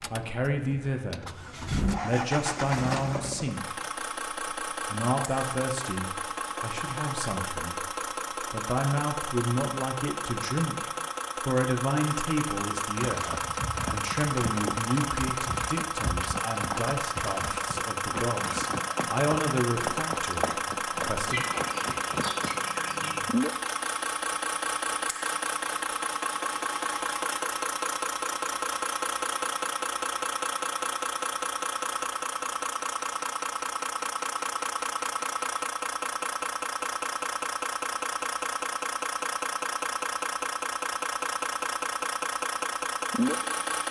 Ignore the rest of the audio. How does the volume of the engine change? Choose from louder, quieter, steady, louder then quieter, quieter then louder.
steady.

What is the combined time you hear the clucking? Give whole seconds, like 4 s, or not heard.
2 s.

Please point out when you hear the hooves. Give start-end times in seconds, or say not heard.
13.1-22.6.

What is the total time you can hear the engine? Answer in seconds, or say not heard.
44 s.